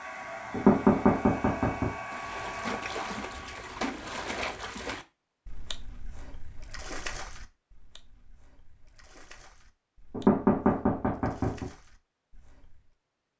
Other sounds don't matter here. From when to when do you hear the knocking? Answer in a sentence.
The knocking can be heard from 0.5 to 1.9 s and from 10.1 to 11.7 s.